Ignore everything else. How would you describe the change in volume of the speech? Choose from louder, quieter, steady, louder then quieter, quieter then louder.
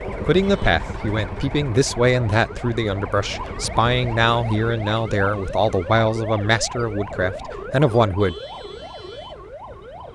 steady.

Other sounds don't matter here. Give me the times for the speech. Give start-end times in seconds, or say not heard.
0.2-8.3.